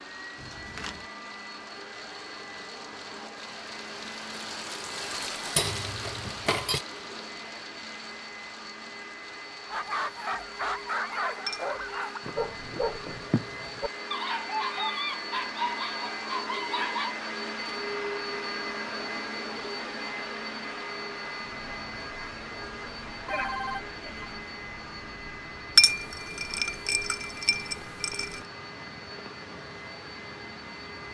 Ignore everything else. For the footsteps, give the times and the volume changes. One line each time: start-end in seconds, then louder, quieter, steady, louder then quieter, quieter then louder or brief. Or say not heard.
not heard.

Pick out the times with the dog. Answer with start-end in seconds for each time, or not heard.
9.7-17.1.